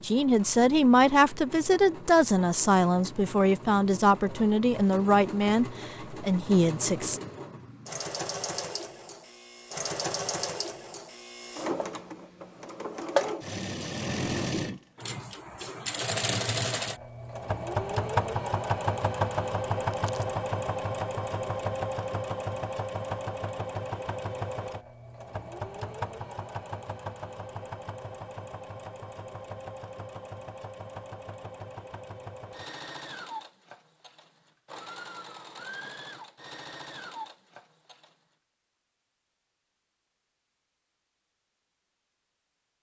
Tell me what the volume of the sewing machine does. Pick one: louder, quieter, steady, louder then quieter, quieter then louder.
louder then quieter.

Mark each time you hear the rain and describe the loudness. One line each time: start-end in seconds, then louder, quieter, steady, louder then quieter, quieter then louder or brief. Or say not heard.
not heard.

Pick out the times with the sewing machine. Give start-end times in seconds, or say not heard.
0.0-38.1.